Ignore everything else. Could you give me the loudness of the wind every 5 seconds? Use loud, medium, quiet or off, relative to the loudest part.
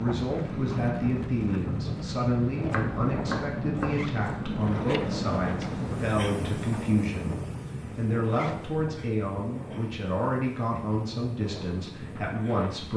loud, loud, medium.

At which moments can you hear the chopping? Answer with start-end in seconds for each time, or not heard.
2.7-4.4.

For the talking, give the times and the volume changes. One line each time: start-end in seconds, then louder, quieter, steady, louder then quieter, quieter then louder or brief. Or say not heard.
0.0-12.9 steady.